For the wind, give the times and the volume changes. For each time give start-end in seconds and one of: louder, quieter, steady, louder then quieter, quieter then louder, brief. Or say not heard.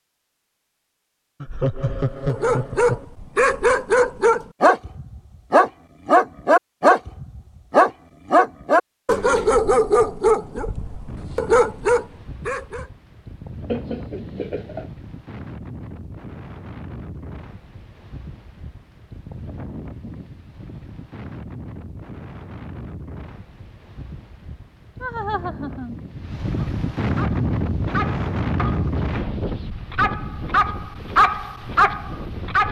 11.1-32.6 louder.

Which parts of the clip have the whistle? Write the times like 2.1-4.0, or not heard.
not heard.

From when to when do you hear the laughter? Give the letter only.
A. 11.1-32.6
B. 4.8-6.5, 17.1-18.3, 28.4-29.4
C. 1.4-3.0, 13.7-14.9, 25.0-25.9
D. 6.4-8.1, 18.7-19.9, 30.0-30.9
C.